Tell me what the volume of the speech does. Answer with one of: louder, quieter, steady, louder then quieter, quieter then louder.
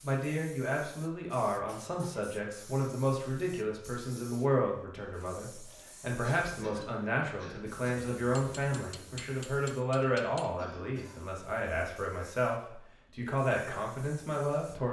steady.